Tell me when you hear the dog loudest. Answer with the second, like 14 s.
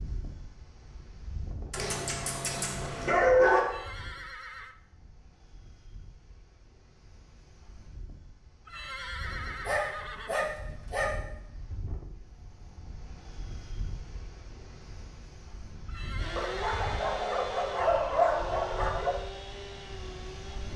3 s.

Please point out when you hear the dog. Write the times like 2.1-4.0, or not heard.
1.7-3.6, 9.7-11.1, 16.4-19.1.